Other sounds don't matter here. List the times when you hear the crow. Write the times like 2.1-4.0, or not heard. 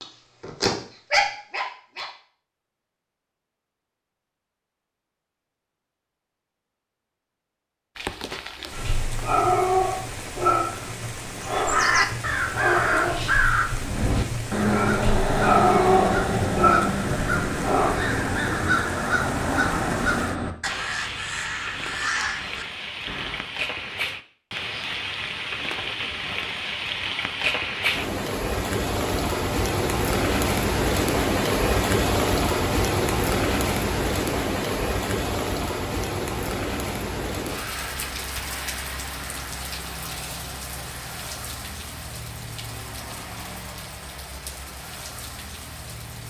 11.4-23.4.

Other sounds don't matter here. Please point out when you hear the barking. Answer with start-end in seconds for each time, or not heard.
0.0-2.1, 8.7-18.1.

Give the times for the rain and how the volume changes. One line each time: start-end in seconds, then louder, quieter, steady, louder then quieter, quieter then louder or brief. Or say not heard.
8.0-46.2 louder then quieter.